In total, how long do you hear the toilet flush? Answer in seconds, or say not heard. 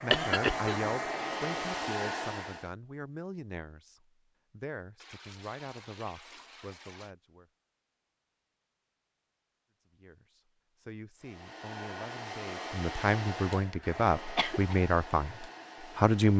2 s.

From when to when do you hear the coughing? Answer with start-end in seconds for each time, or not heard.
0.1-0.9, 13.8-14.8.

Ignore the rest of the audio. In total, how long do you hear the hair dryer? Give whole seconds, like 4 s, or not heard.
8 s.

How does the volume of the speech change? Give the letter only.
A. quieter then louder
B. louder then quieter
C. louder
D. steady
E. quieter
A.